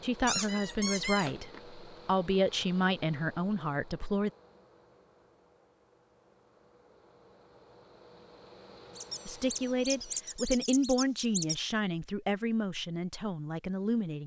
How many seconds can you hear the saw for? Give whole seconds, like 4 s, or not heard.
not heard.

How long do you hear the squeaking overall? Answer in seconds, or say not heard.
4 s.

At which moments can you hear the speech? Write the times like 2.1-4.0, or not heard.
0.0-4.3, 9.2-14.2.